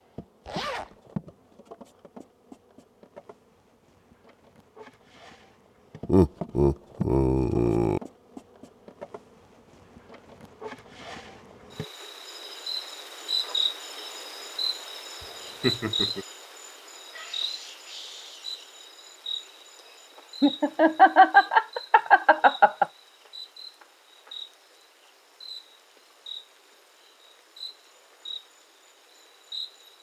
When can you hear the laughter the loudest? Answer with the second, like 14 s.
21 s.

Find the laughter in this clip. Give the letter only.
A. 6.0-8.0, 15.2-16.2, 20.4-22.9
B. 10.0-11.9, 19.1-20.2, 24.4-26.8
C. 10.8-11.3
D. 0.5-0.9
A.